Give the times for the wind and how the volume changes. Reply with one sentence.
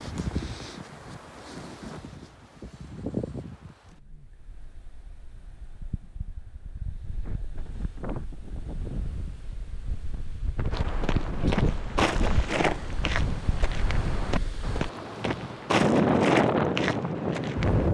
The wind can be heard from 0.0 to 17.8 s, getting quieter then louder.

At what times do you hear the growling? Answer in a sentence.
You can't hear the growling here.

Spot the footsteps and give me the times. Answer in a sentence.
The footsteps can be heard from 10.7 to 17.8 s.